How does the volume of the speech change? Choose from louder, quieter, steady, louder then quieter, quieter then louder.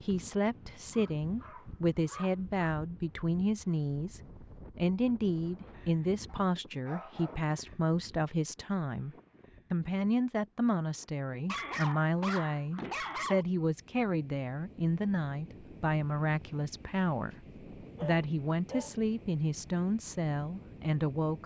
steady.